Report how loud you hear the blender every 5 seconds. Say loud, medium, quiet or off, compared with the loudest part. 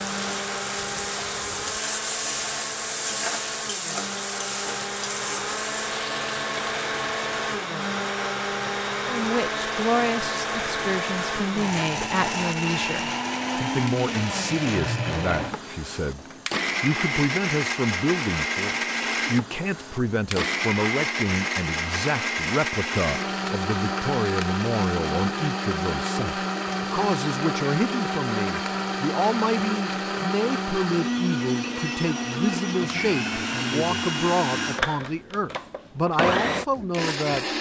medium, loud, loud, loud, loud, loud, loud, loud.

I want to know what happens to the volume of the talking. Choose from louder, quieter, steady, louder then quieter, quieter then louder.
steady.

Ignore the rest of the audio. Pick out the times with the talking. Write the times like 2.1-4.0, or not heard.
9.1-37.5.